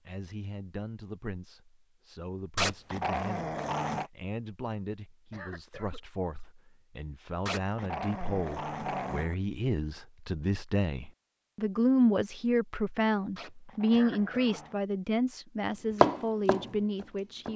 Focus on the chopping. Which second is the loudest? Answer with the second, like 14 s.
16 s.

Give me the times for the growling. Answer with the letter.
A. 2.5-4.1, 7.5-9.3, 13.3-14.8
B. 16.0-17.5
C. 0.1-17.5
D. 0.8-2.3
A.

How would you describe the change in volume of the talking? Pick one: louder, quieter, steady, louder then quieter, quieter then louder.
louder.